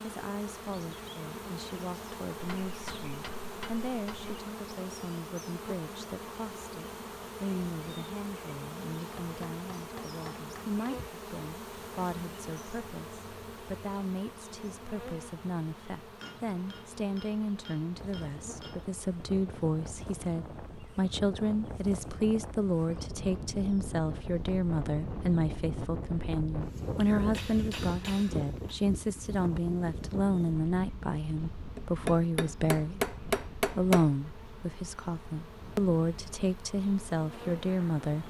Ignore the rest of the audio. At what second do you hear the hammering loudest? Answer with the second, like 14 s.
33 s.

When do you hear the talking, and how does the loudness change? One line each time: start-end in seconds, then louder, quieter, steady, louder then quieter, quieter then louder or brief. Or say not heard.
0.0-38.2 louder.